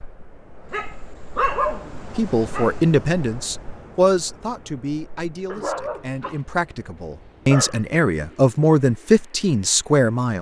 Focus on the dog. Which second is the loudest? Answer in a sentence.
The loudest moment of the dog is at 2 seconds.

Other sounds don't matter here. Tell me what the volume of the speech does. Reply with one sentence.
The loudness of the speech goes down, then up.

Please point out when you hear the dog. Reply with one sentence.
The dog can be heard from 0.7 to 2.8 s and from 5.5 to 7.9 s.